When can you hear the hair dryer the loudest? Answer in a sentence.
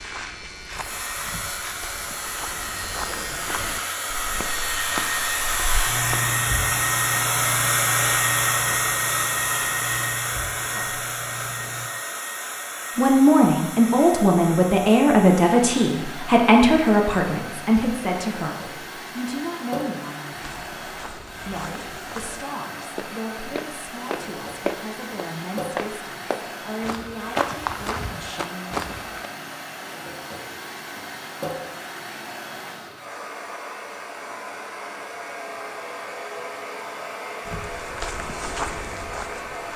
The volume of the hair dryer peaks at 8 seconds.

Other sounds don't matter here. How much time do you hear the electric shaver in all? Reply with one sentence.
You can hear the electric shaver for 12 seconds altogether.